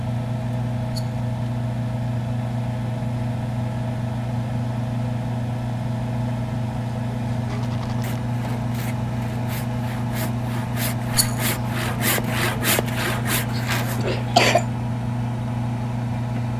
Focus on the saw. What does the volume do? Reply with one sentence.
The volume of the saw goes up.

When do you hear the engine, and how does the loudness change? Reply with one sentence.
The engine can be heard from 0.0 to 16.5 s, at a steady volume.